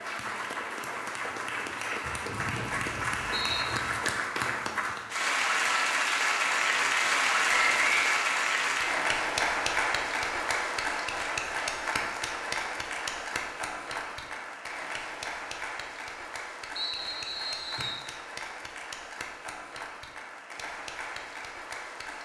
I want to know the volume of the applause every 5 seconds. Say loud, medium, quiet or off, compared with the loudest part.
medium, loud, medium, quiet, quiet.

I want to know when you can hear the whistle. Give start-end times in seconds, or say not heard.
2.2-3.6, 7.5-8.2, 16.8-18.1.